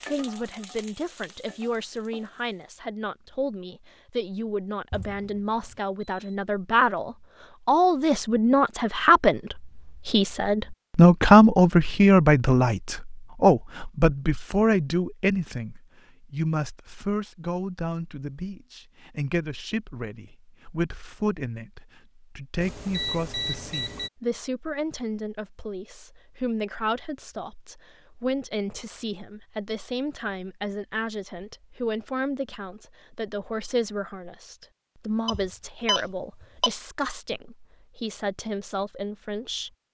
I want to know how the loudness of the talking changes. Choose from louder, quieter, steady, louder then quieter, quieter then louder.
louder then quieter.